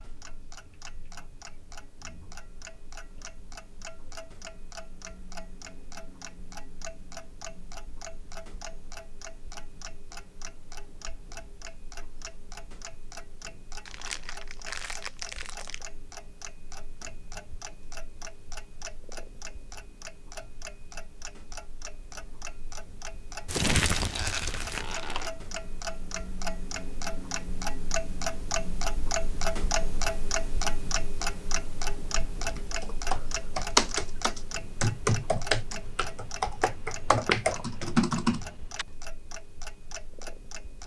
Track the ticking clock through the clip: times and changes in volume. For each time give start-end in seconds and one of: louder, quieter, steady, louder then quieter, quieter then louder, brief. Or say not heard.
0.0-40.8 louder then quieter.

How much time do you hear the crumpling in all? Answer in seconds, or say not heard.
4 s.